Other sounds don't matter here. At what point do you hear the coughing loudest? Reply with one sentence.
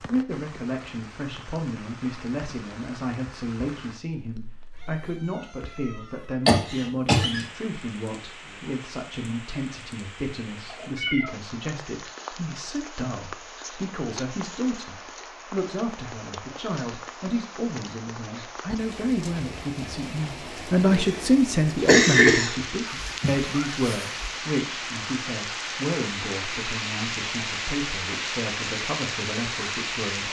The loudest moment of the coughing is at 22 seconds.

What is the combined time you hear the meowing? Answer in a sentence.
You can hear the meowing for 4 seconds altogether.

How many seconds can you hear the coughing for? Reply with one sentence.
The coughing can be heard for 3 seconds in total.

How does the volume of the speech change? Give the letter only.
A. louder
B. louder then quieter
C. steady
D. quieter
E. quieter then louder
B.